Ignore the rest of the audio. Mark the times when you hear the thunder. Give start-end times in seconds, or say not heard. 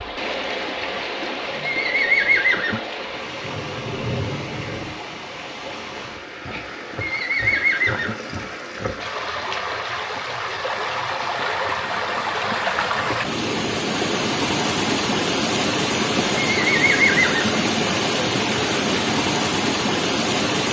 3.4-5.0.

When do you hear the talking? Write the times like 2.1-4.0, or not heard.
not heard.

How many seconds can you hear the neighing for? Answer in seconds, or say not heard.
3 s.